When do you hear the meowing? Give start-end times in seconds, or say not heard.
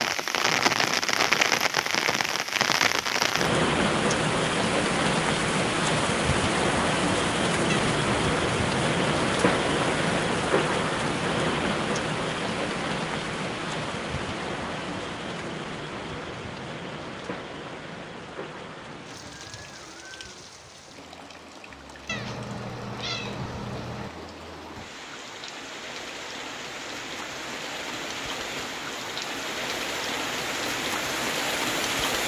7.7-8.2, 22.1-24.1.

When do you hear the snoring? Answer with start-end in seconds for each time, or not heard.
not heard.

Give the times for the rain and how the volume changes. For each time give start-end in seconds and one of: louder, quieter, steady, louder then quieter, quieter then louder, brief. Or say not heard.
0.0-32.2 quieter then louder.